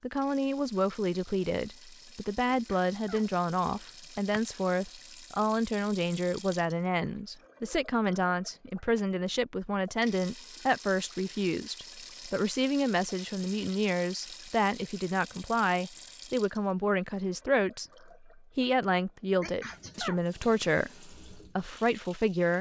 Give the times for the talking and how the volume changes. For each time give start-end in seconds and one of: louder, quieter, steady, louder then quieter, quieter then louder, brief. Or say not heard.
0.0-22.5 steady.